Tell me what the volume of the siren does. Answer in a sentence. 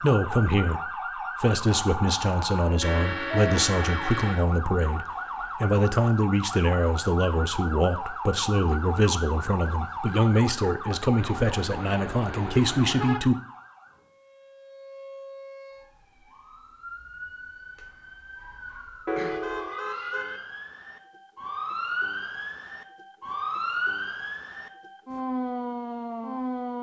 The loudness of the siren goes down, then up.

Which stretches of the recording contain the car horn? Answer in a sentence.
You can hear the car horn from 2.8 to 4.5 s, from 11.2 to 13.2 s and from 19.1 to 20.4 s.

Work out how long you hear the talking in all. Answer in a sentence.
The talking can be heard for 13 seconds in total.